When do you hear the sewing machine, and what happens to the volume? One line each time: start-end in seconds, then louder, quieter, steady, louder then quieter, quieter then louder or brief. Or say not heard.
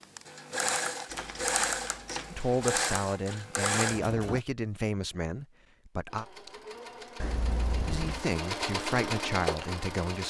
0.0-4.4 quieter then louder
6.0-10.2 louder.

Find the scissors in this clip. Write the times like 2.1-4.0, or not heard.
1.1-2.6, 7.2-8.2.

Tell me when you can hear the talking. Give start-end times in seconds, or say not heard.
2.3-6.2, 7.8-10.2.